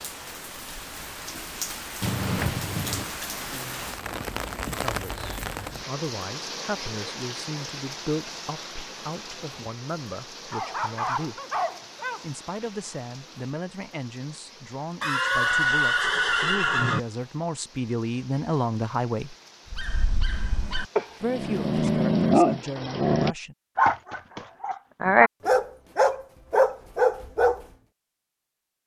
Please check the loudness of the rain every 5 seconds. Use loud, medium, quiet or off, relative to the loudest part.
loud, loud, medium, quiet, quiet, off.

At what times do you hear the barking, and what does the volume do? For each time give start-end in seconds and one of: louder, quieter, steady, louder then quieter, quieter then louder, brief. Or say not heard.
10.5-12.2 brief
19.7-27.6 louder.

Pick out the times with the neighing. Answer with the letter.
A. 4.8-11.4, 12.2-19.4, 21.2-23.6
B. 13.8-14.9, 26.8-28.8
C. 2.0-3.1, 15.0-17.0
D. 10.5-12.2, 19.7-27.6
C.